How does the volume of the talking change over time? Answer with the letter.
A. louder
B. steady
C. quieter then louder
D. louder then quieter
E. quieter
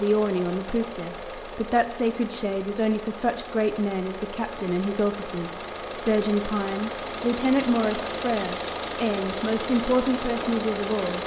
B.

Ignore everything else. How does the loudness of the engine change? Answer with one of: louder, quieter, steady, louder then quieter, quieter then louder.
louder.